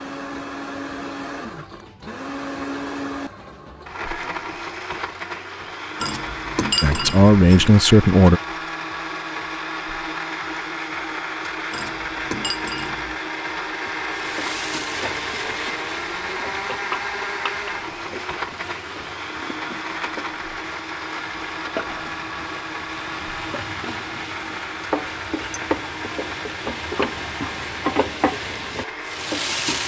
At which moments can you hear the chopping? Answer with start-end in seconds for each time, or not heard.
not heard.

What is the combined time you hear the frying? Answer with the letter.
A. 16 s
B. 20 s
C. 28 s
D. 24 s
A.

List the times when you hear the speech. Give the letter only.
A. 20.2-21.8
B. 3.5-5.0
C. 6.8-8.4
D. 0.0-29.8
C.